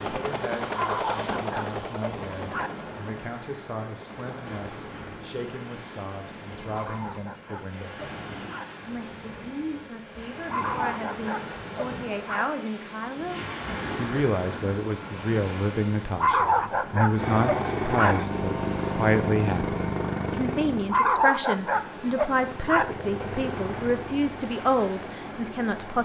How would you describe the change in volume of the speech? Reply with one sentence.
The loudness of the speech goes up.